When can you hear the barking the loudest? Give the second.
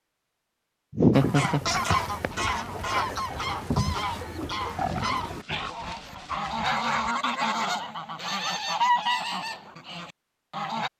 5 s.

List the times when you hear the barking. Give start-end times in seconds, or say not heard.
4.8-7.1.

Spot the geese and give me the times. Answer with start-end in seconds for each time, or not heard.
1.1-10.9.